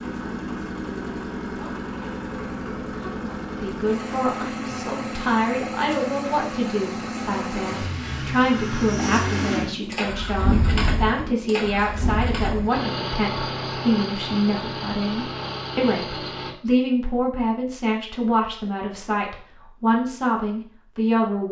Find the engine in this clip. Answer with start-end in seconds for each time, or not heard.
0.0-16.6.